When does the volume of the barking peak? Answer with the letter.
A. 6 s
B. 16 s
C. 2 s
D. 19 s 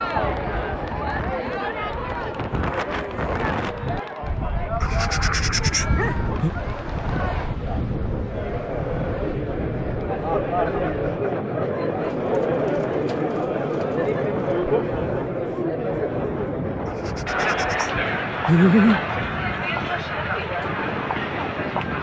D.